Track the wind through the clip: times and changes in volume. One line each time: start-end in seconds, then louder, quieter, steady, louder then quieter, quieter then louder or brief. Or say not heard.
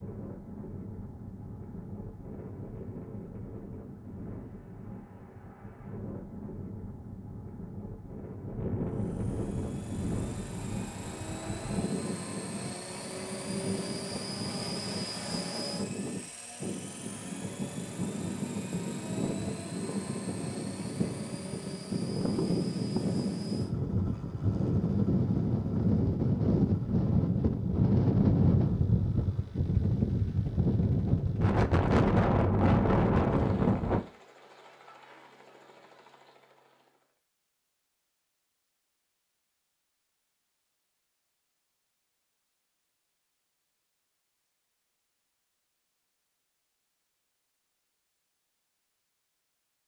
0.0-34.0 louder.